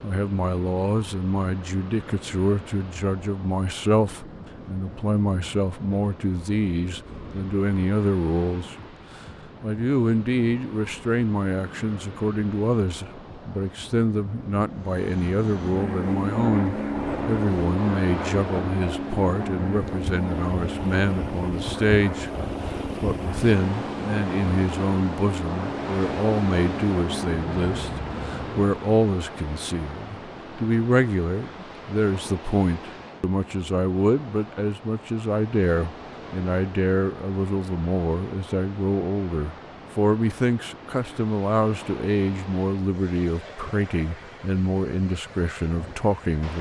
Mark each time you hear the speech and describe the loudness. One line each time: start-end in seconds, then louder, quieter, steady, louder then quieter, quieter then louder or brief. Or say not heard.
0.0-8.8 steady
9.6-46.5 steady.